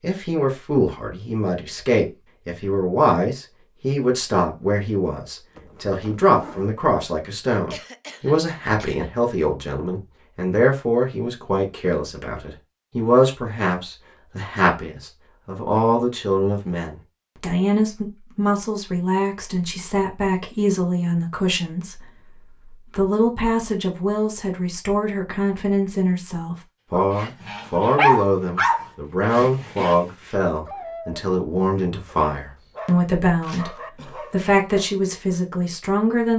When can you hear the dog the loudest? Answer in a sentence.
The volume of the dog peaks at 28 seconds.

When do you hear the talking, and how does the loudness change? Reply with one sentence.
The talking can be heard from 0.0 to 36.3 s, at a steady volume.